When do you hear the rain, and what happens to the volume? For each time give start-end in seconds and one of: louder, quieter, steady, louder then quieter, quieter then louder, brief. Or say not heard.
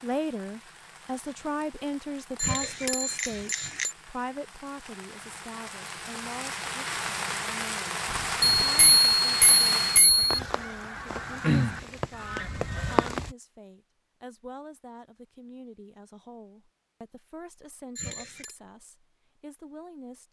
0.0-13.3 louder.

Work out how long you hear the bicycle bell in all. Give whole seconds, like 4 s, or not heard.
4 s.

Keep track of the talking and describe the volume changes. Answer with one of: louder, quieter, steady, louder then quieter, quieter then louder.
quieter.